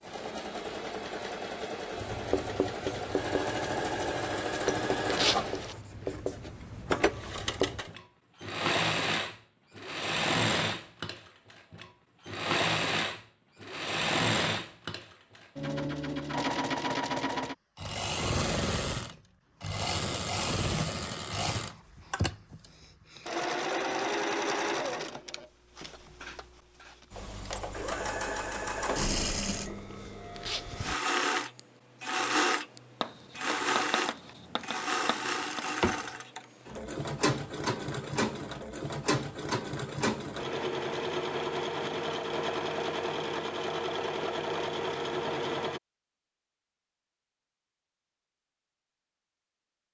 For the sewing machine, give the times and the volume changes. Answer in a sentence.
The sewing machine can be heard from 0.0 to 45.8 s, at a steady volume.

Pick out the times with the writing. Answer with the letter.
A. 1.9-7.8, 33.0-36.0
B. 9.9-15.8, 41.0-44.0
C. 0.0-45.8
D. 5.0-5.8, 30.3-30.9
A.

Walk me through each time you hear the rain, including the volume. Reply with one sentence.
You can't hear the rain here.